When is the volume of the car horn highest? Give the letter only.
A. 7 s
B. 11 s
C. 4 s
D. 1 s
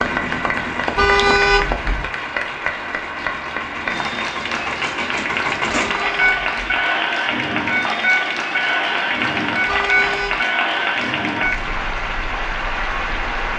D.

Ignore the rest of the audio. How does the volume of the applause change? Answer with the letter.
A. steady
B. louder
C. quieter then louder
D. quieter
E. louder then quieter
A.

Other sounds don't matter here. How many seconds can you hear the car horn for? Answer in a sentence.
The car horn can be heard for 3 seconds in total.